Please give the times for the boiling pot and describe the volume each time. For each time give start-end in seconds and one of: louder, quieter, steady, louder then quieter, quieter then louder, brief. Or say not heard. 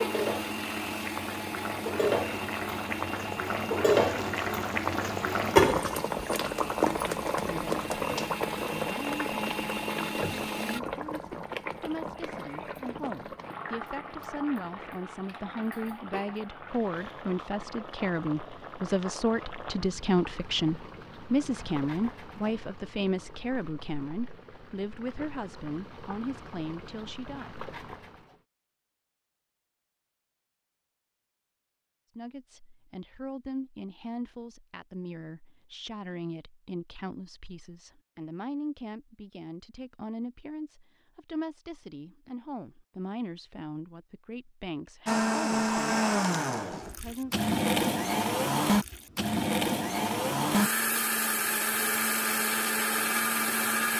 0.0-28.4 quieter.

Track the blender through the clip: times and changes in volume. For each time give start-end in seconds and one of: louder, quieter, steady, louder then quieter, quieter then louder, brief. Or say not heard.
0.0-10.8 quieter then louder
45.0-53.9 steady.